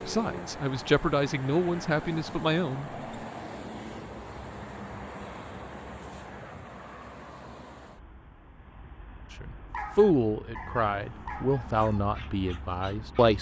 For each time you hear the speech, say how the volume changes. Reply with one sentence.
The speech can be heard briefly from 0.1 to 2.9 s; and from 9.3 to 13.3 s, getting quieter.